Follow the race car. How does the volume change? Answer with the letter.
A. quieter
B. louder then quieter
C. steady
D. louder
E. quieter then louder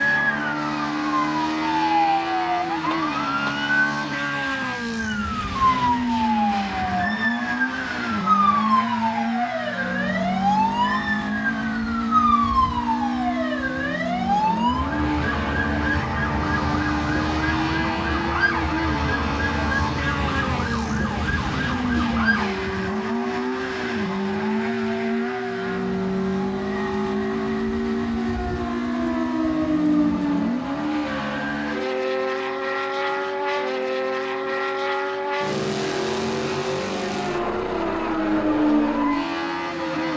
C.